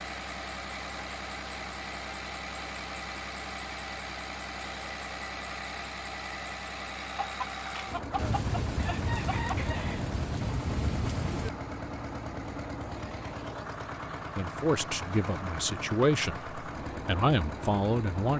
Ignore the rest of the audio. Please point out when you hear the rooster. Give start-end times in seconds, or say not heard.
7.2-10.1.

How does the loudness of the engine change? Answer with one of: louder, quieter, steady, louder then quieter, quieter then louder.
steady.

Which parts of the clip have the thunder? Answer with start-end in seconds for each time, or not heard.
8.2-11.5.